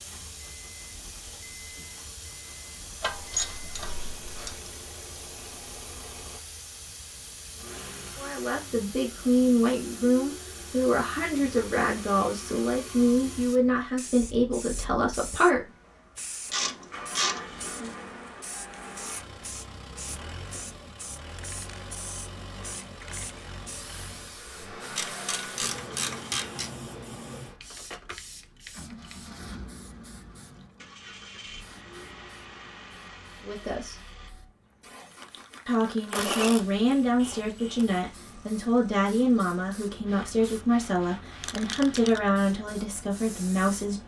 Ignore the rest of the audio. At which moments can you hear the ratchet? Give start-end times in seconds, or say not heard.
3.0-4.7, 16.5-17.7, 24.9-26.7, 36.1-37.9.